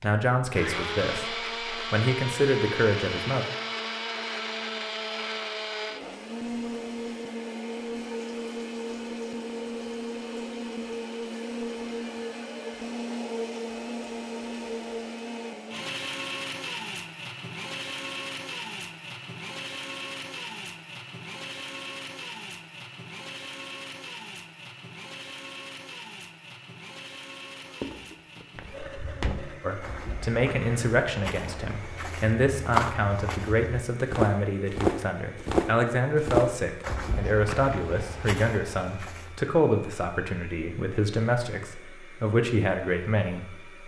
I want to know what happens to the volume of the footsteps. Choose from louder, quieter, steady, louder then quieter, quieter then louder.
louder then quieter.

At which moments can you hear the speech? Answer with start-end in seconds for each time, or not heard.
0.0-3.5, 29.6-43.8.